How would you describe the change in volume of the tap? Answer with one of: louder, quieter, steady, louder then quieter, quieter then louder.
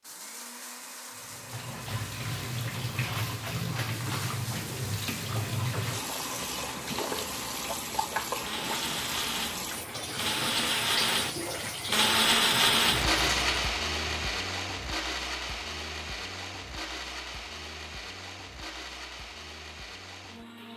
steady.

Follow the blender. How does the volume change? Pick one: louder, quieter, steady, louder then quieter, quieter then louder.
louder then quieter.